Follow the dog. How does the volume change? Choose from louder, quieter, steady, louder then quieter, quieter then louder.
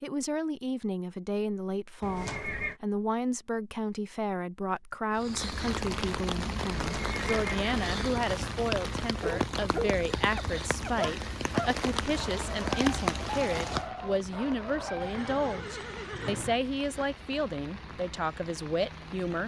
quieter.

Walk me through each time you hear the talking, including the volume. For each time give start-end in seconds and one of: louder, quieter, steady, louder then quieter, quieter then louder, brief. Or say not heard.
0.0-19.4 steady.